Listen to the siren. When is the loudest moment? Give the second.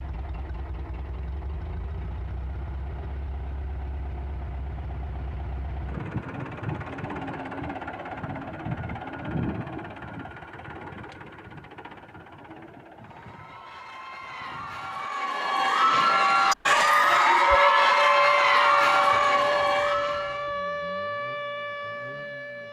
18 s.